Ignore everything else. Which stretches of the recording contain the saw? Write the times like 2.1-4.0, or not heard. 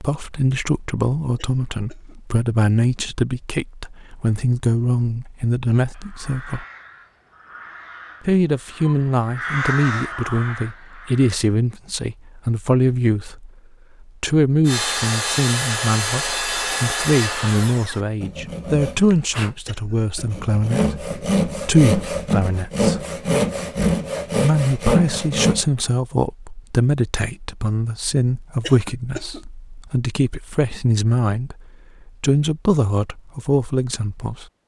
14.7-25.6.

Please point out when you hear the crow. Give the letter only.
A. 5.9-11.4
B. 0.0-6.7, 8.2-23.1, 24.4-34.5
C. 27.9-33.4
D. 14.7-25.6
A.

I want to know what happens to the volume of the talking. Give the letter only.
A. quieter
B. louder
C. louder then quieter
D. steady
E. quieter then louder
D.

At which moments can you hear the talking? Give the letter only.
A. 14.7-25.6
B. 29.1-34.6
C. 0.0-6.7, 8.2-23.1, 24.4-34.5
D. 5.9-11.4
C.